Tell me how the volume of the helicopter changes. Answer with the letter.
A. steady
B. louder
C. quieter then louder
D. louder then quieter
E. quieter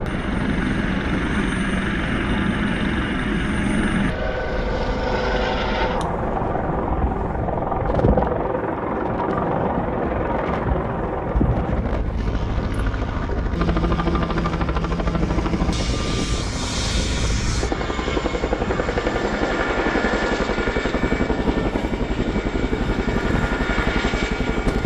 A.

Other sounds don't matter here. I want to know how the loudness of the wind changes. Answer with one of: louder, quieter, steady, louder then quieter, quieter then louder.
steady.